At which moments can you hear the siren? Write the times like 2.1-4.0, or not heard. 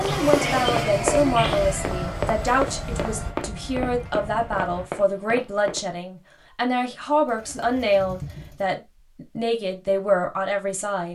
not heard.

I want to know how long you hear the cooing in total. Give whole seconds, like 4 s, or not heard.
3 s.